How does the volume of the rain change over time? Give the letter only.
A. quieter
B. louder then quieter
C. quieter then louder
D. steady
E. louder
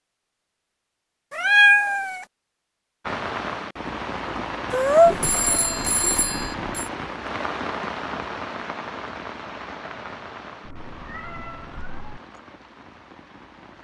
A.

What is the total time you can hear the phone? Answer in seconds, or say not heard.
2 s.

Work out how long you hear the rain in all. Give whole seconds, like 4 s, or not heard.
11 s.